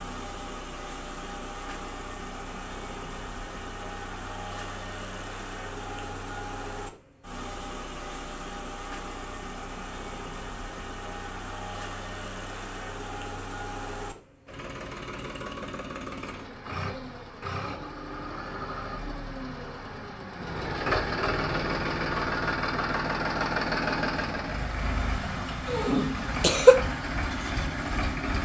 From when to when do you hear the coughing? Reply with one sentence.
You can hear the coughing from 26.4 to 26.8 s.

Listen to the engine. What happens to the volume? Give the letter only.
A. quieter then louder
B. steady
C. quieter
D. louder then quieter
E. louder
E.